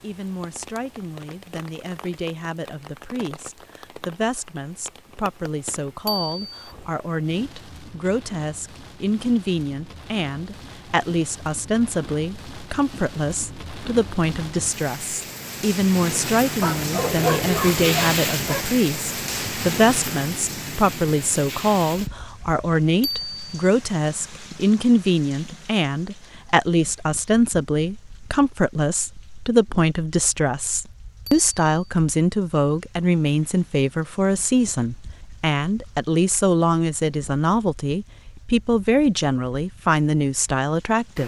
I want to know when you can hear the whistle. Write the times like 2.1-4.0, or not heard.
not heard.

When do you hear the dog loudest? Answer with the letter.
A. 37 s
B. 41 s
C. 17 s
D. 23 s
C.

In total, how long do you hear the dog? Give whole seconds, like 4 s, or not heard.
2 s.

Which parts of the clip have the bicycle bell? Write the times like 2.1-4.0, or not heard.
6.0-6.8, 23.0-23.7, 31.2-31.9.